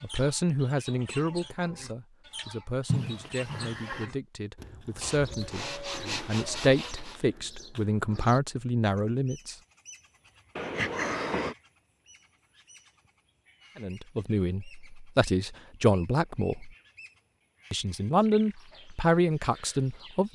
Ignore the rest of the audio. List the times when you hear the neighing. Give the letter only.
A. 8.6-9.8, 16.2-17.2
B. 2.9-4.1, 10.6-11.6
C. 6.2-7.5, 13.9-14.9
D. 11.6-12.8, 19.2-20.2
B.